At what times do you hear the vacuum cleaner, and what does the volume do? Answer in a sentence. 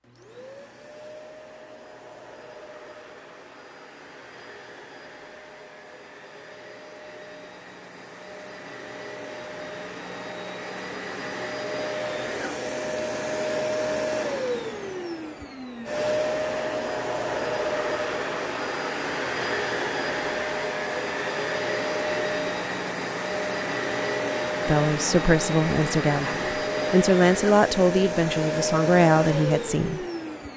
The vacuum cleaner can be heard from 0.0 to 30.5 s, getting louder.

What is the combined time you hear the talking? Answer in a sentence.
You can hear the talking for 6 seconds altogether.